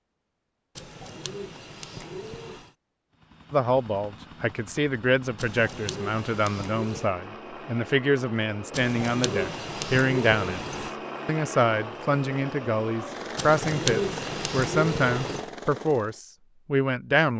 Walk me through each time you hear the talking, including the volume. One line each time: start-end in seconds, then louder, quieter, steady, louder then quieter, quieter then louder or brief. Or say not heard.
3.5-17.3 steady.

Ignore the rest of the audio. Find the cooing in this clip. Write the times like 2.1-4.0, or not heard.
0.8-2.8, 5.3-7.2, 8.7-10.9, 13.3-15.5.